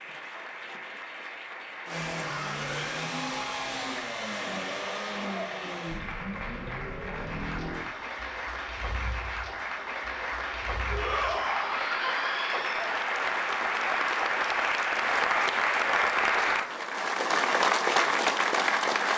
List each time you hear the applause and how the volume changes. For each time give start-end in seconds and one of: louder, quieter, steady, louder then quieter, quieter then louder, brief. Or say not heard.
0.0-19.1 louder.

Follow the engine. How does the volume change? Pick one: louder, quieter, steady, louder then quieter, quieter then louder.
quieter.